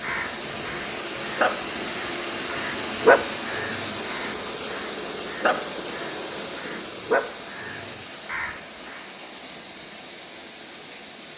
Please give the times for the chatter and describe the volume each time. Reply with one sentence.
The chatter can't be heard in this clip.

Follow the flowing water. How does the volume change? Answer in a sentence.
The loudness of the flowing water goes down.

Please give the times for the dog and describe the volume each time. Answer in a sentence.
The dog can't be heard in this clip.